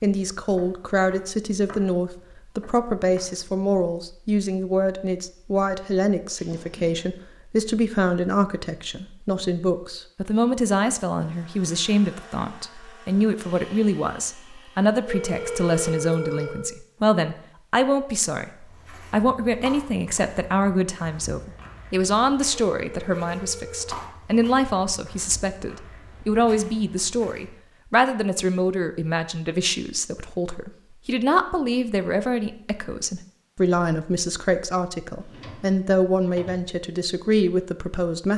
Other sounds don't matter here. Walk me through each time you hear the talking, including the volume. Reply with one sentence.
The talking can be heard from 0.0 to 38.3 s, at a steady volume.